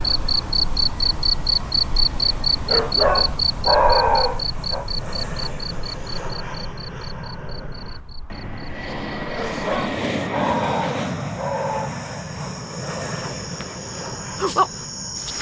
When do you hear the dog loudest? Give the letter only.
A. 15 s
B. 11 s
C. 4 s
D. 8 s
C.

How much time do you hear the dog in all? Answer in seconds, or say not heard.
5 s.